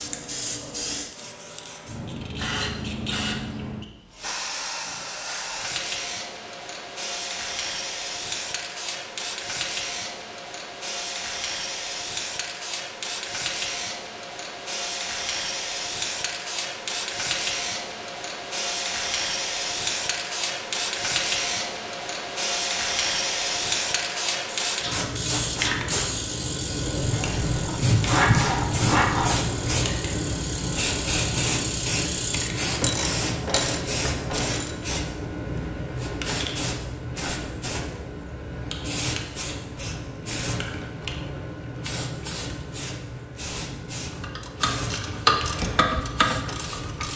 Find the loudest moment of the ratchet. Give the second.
45 s.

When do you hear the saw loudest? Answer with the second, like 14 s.
28 s.